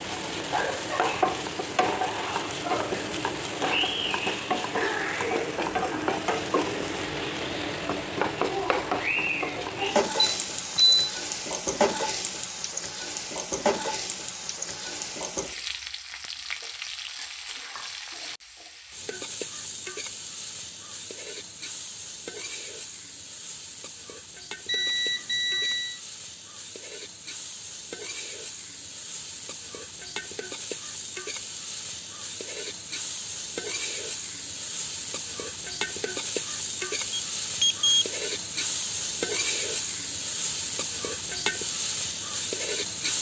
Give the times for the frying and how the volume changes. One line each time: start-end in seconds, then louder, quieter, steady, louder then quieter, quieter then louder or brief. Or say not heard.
0.0-43.1 quieter then louder.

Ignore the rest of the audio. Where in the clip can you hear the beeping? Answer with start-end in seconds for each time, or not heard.
10.2-11.1, 24.6-26.0, 37.1-38.0.